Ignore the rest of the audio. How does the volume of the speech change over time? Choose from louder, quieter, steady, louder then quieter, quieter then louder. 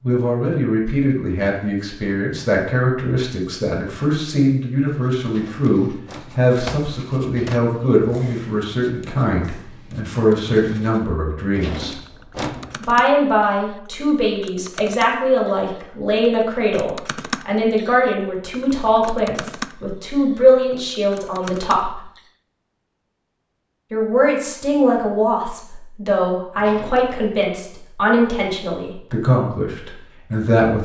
steady.